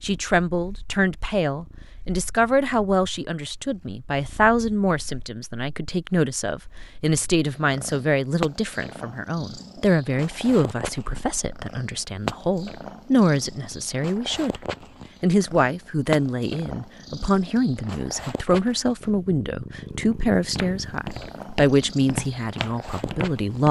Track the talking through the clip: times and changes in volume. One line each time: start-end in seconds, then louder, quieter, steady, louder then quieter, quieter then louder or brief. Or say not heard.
0.0-14.6 steady
15.2-23.6 steady.